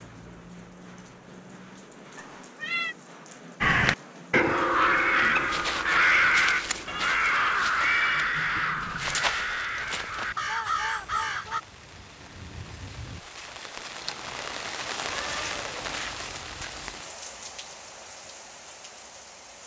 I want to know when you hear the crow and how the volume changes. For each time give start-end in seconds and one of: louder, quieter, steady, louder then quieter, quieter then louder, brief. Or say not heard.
3.6-11.6 quieter.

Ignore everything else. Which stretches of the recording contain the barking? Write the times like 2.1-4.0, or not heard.
not heard.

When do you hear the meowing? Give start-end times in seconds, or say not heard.
2.1-3.0, 6.8-8.2, 15.1-17.1.